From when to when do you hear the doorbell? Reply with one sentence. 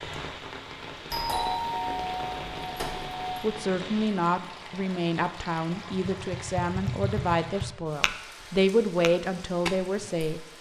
The doorbell can be heard from 1.1 to 3.5 s.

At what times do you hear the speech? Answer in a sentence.
You can hear the speech from 3.4 to 10.4 s.